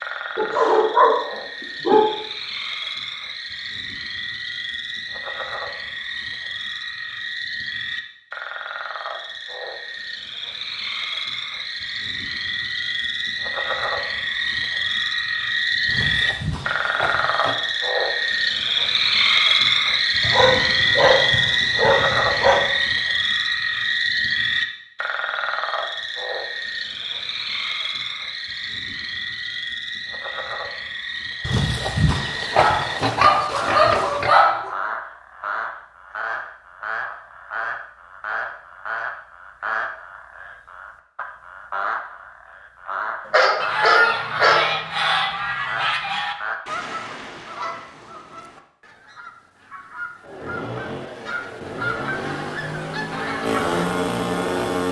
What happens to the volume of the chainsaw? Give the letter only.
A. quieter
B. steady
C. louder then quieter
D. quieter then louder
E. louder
E.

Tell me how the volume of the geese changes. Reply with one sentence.
The loudness of the geese goes down, then up.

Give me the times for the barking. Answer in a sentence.
You can hear the barking from 0.3 to 2.1 s, from 20.2 to 22.7 s, from 32.5 to 34.7 s and from 43.2 to 44.8 s.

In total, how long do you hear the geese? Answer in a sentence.
The geese can be heard for 10 seconds in total.